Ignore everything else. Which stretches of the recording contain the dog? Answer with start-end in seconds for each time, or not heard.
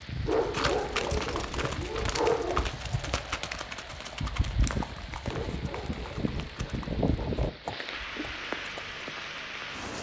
0.2-2.7, 5.2-7.3.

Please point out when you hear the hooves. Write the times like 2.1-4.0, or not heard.
0.0-9.4.